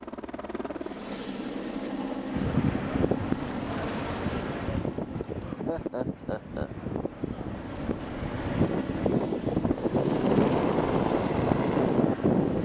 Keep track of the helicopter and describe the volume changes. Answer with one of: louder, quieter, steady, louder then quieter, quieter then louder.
quieter then louder.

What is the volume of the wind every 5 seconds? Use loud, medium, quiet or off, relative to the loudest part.
medium, medium, loud.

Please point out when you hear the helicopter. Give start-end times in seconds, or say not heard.
0.0-12.6.